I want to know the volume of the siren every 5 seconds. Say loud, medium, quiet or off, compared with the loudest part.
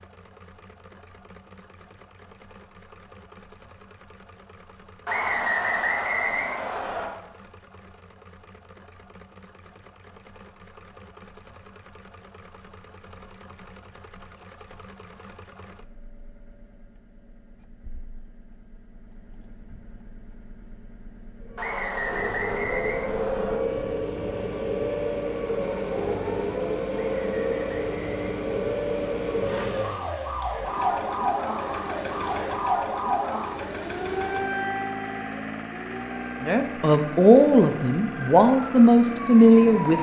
off, off, off, off, loud, loud, loud, medium.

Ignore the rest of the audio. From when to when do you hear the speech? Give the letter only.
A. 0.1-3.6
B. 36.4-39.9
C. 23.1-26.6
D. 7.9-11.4
B.